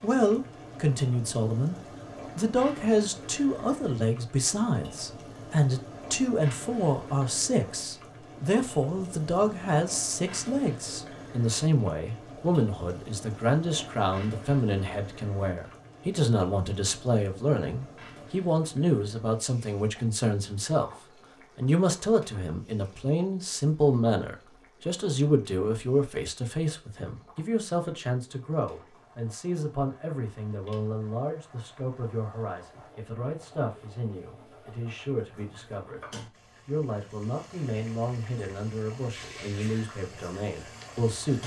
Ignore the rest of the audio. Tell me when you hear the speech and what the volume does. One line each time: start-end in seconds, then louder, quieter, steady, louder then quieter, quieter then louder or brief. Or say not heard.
0.0-1.8 brief
2.4-20.9 steady
21.6-41.4 quieter.